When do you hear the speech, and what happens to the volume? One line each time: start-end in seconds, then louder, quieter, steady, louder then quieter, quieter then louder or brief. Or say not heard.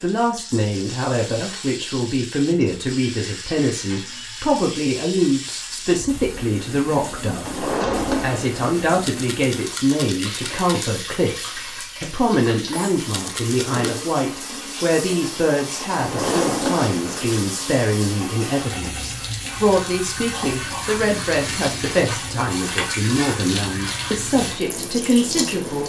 0.0-25.8 steady.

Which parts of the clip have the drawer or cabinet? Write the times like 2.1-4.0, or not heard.
7.4-8.8, 15.9-17.4.